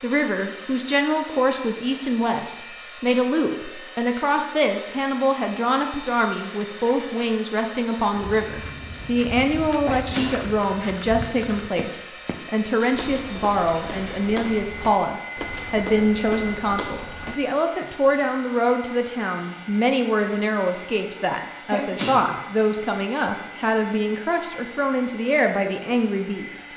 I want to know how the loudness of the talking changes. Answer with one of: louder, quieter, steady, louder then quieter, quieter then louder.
steady.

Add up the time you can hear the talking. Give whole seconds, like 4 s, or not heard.
27 s.